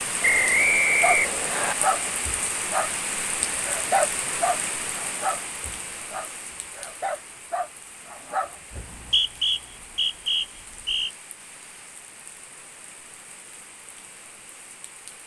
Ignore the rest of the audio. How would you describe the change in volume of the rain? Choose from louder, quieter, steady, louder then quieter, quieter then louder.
quieter.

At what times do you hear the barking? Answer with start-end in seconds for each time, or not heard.
1.0-2.9, 3.6-8.9.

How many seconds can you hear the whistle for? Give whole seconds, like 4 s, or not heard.
4 s.